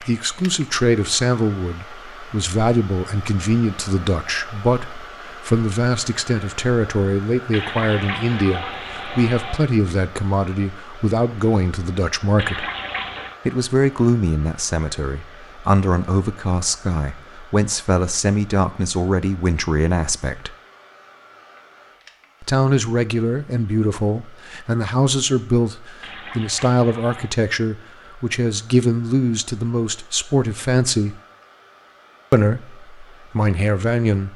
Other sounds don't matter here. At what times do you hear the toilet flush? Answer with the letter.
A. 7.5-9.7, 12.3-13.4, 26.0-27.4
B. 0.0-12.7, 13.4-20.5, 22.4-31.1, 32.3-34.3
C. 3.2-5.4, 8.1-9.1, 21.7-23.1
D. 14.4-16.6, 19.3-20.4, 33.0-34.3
A.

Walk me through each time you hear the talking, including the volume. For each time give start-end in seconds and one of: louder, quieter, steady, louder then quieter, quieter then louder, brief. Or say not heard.
0.0-12.7 steady
13.4-20.5 steady
22.4-31.1 steady
32.3-34.3 brief.